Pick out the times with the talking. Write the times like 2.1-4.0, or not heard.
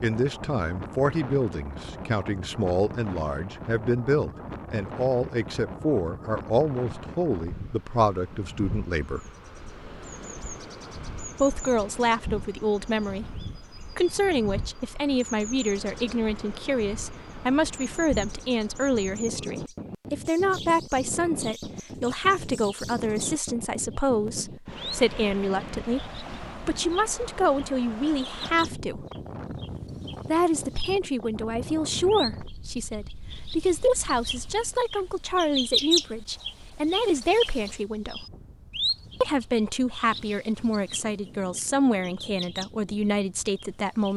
0.0-9.2, 11.3-29.1, 30.2-38.2, 39.2-44.1.